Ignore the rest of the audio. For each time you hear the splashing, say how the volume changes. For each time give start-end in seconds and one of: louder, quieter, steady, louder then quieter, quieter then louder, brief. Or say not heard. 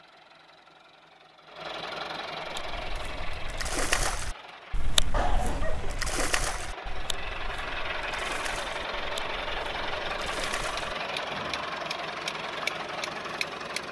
2.4-11.7 quieter.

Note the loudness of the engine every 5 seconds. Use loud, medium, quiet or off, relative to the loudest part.
medium, loud, loud.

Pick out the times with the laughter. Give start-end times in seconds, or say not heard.
5.1-6.0.